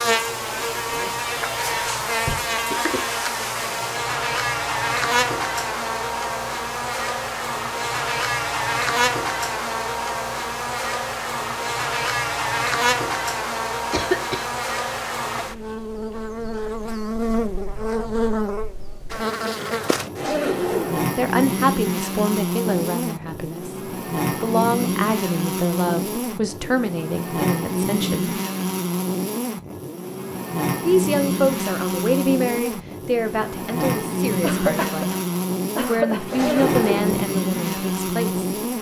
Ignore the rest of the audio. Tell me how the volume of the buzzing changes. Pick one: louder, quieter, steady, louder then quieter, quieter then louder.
steady.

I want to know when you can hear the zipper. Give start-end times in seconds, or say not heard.
0.5-2.4, 20.1-21.1, 36.3-37.2.